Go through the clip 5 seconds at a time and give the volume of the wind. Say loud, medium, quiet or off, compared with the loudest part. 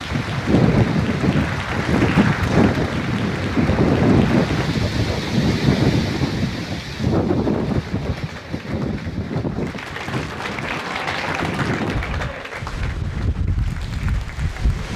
loud, loud, medium.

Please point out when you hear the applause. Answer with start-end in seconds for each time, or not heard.
0.0-4.8, 7.7-14.8.